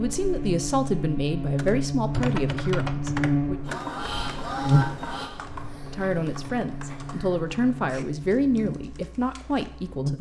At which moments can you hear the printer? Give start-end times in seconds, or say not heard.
3.6-7.4.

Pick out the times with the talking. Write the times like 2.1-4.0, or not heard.
0.0-3.5, 5.9-10.1.